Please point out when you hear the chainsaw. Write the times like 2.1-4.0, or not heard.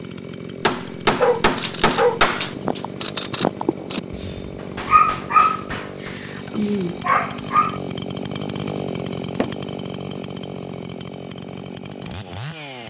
0.0-12.8.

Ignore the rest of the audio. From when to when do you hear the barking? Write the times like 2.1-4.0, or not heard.
1.2-7.8.